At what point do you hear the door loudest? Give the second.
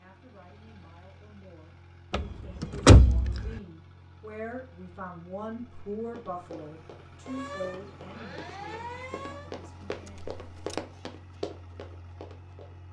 3 s.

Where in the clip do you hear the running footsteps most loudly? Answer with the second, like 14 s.
11 s.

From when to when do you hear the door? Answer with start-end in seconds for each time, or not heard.
2.1-3.5, 10.1-10.8.